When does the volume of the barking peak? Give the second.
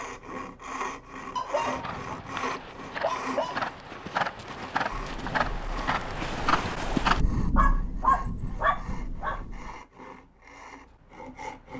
8 s.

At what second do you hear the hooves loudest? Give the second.
7 s.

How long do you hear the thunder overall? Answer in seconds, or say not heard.
5 s.